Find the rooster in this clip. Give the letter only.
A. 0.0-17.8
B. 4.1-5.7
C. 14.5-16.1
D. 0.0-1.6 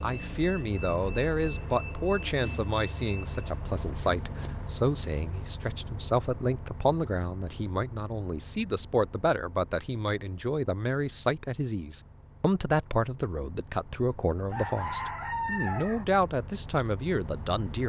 C.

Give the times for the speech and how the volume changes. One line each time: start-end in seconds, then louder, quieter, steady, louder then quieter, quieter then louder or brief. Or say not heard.
0.0-17.8 steady.